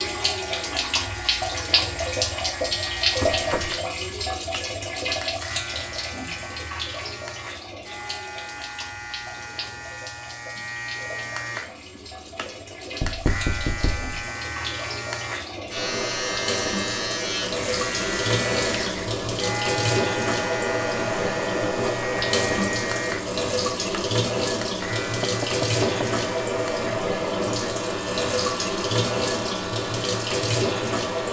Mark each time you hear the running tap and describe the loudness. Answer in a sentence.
The running tap can be heard from 0.0 to 31.2 s, getting quieter then louder.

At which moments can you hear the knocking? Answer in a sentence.
You can hear the knocking from 3.2 to 3.8 s, from 13.0 to 14.1 s and from 25.1 to 26.1 s.